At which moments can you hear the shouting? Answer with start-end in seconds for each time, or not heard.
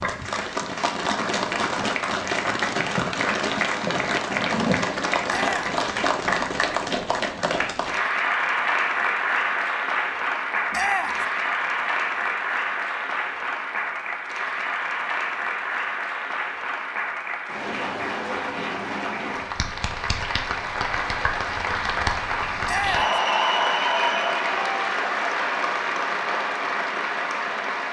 5.2-5.8, 10.7-11.2, 22.6-23.2.